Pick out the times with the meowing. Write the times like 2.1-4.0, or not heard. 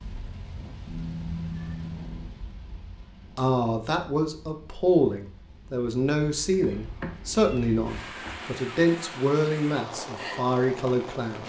0.8-2.3, 6.6-8.3.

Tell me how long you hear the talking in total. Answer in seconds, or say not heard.
8 s.